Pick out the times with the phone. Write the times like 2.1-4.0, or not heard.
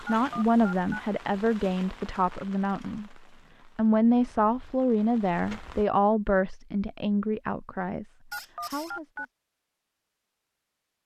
0.1-1.0, 8.3-9.2.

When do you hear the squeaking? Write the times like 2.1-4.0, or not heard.
8.3-8.9.